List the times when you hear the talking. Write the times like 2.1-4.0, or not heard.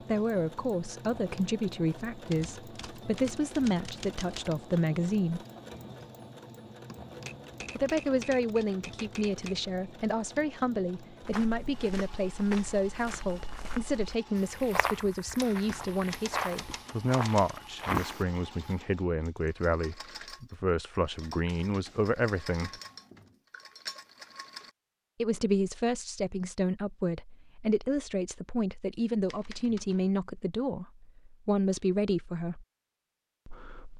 0.1-5.4, 7.8-22.7, 25.2-32.6, 33.5-33.9.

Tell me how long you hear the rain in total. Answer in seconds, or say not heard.
not heard.